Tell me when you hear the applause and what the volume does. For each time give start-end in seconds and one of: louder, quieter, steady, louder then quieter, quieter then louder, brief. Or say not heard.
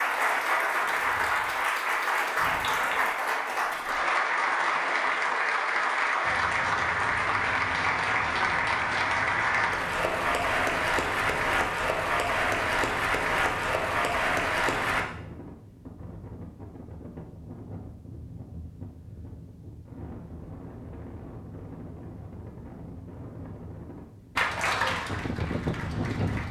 0.0-15.0 steady
24.4-26.4 brief.